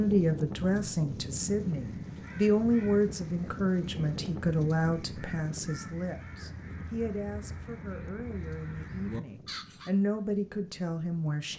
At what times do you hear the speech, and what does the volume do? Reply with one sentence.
You can hear the speech from 0.0 to 11.5 s, getting quieter then louder.